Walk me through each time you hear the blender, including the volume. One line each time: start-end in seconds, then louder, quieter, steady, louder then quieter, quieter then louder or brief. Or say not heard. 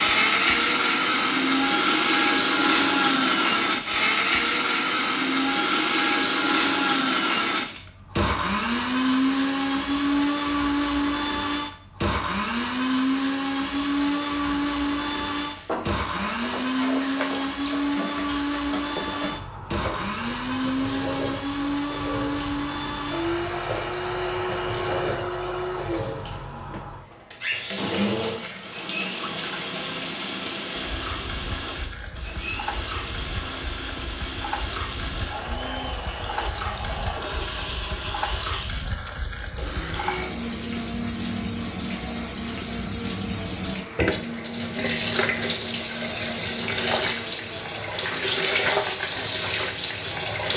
0.0-50.5 quieter.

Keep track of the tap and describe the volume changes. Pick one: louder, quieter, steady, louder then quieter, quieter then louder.
louder.